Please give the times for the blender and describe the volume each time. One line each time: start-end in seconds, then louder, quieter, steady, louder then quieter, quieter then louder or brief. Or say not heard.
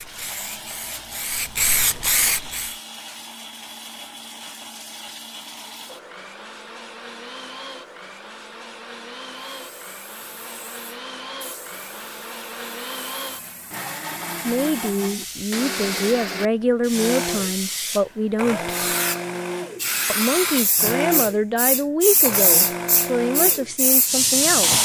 0.0-24.8 louder.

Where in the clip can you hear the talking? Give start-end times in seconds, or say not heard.
14.4-18.7, 20.1-24.8.